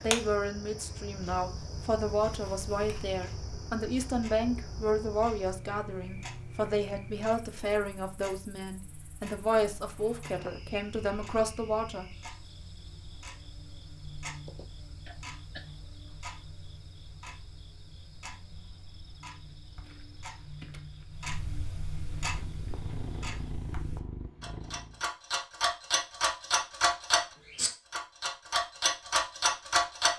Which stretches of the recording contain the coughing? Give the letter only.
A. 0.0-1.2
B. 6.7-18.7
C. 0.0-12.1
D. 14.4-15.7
D.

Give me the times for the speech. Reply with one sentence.
You can hear the speech from 0.0 to 12.1 s.